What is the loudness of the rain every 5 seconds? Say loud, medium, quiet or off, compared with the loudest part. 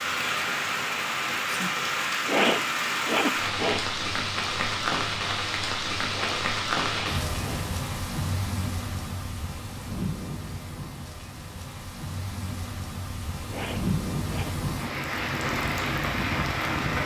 loud, loud, medium, loud.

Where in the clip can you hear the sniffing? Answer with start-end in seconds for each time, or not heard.
2.2-3.9, 6.1-7.7, 13.4-14.6.